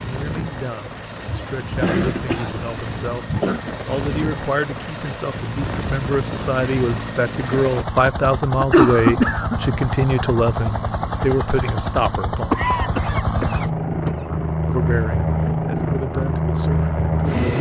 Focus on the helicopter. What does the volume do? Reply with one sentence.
The loudness of the helicopter goes up.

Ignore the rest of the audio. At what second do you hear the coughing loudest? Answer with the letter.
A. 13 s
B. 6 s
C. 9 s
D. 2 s
C.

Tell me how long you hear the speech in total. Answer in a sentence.
You can hear the speech for 15 seconds altogether.